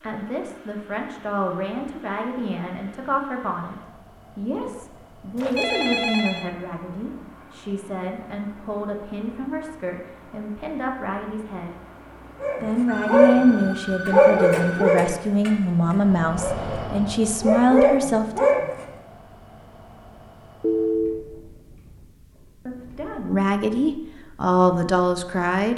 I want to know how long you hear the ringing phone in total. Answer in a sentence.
You can hear the ringing phone for 4 seconds altogether.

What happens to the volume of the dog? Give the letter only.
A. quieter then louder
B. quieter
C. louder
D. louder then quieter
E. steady
A.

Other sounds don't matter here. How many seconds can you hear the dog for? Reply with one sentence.
The dog can be heard for 6 seconds in total.